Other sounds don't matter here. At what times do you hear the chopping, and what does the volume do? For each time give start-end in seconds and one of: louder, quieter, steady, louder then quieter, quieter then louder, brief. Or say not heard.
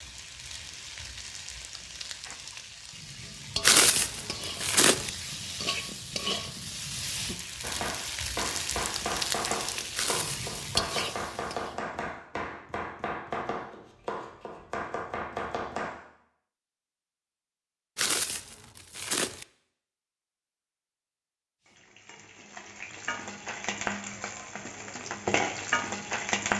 7.6-15.9 steady.